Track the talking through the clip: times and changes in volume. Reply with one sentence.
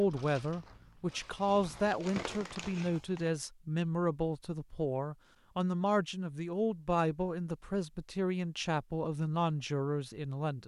The talking can be heard from 0.0 to 10.6 s, at a steady volume.